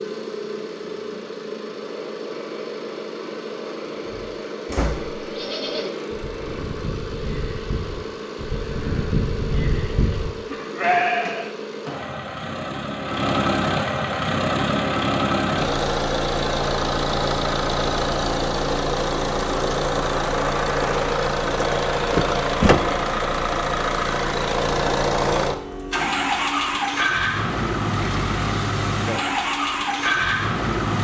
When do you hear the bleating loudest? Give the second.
11 s.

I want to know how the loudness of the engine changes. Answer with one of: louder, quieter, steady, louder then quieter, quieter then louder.
louder.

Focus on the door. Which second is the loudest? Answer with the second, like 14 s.
23 s.